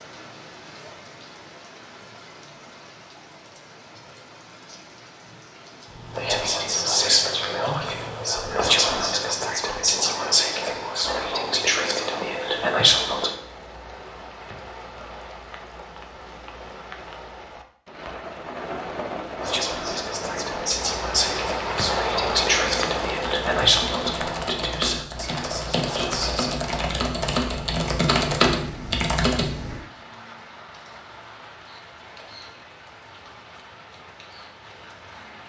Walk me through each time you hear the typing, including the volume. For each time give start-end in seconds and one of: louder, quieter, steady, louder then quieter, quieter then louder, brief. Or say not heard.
22.6-29.8 louder.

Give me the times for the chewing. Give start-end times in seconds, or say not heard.
not heard.